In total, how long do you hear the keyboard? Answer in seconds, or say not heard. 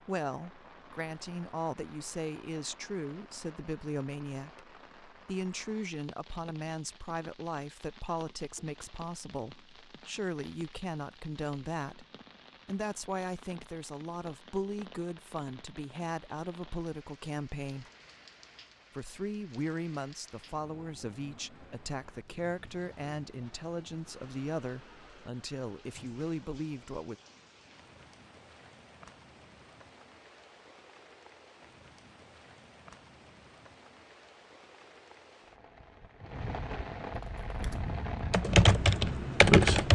3 s.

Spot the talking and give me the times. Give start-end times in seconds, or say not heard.
0.1-12.1, 12.7-17.9, 18.9-27.1.